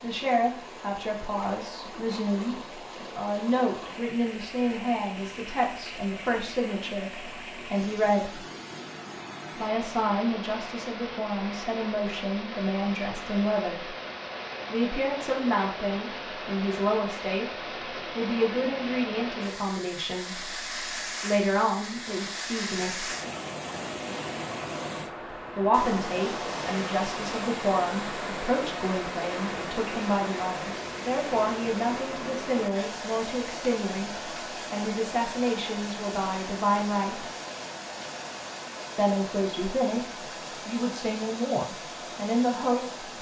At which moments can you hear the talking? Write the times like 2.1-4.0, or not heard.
0.0-8.4, 9.6-13.9, 14.7-17.5, 18.1-23.1, 25.6-37.2, 39.0-43.1.